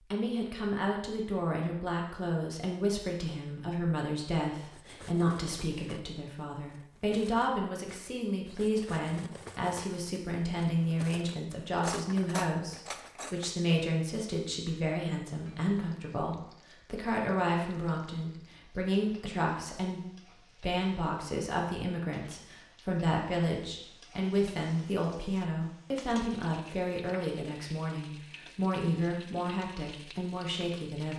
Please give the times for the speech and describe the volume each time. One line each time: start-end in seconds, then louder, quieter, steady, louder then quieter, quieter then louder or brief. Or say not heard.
0.0-31.1 steady.